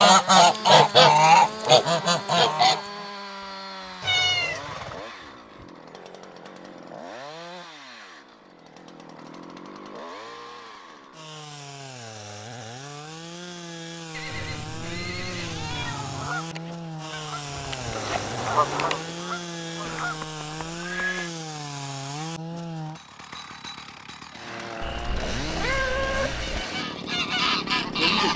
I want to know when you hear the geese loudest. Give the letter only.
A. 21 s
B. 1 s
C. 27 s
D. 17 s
B.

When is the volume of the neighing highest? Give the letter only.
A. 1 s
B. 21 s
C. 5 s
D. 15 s
B.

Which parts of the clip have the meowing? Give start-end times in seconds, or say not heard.
4.0-4.7, 14.2-16.3, 24.8-26.6.